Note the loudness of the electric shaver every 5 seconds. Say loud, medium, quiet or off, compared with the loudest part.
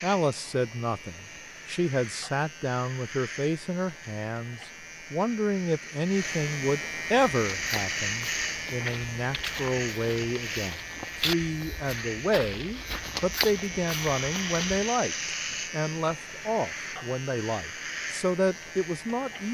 medium, loud, loud, loud.